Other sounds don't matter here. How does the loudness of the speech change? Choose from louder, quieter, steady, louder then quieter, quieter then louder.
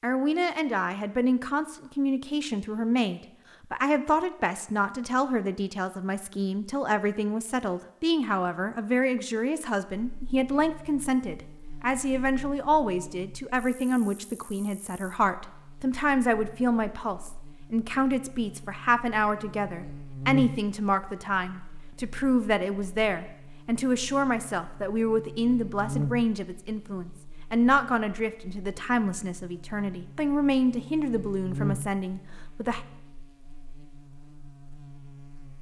steady.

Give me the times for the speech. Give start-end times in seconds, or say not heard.
0.0-32.8.